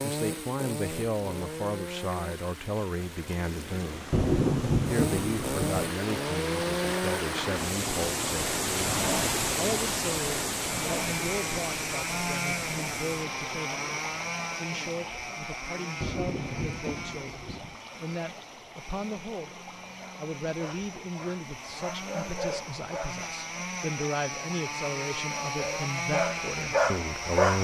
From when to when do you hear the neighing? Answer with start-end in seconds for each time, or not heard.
not heard.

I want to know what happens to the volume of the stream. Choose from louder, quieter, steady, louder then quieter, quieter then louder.
louder then quieter.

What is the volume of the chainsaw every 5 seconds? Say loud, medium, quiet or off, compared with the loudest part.
medium, loud, loud, medium, medium, loud.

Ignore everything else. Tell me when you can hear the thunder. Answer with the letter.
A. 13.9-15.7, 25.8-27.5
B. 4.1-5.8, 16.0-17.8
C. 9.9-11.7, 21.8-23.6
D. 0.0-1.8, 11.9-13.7
B.